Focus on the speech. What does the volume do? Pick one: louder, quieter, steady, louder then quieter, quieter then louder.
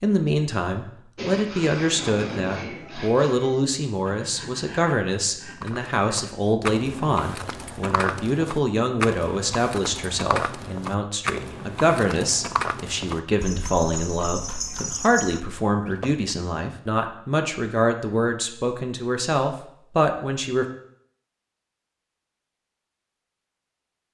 steady.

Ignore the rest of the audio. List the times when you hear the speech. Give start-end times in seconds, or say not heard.
0.0-20.6.